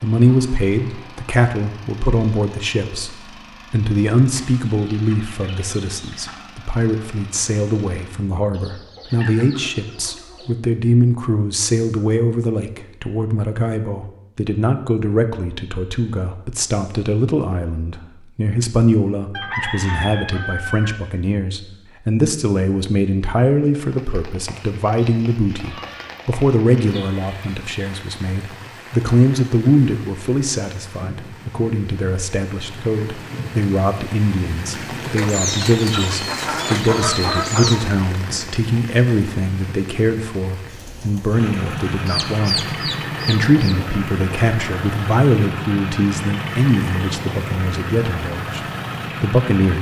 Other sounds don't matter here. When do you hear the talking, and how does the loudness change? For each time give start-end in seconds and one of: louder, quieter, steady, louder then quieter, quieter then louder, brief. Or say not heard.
0.0-48.6 steady
49.2-49.7 brief.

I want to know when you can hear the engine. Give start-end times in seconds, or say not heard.
0.0-8.2, 41.3-49.7.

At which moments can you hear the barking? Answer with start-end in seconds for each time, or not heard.
not heard.